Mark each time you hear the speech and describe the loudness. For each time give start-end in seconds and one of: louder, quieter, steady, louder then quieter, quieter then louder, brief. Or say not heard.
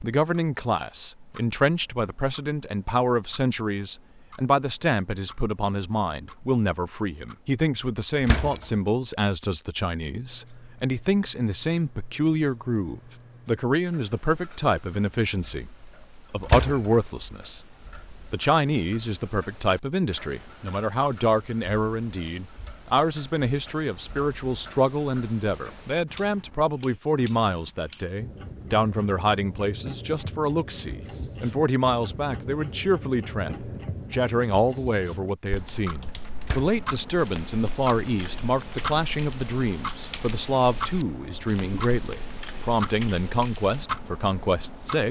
0.0-45.0 steady.